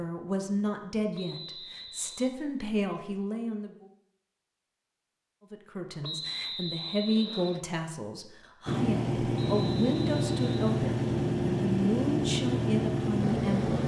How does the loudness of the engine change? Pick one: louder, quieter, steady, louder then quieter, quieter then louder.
steady.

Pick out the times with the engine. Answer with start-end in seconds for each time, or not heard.
8.7-13.8.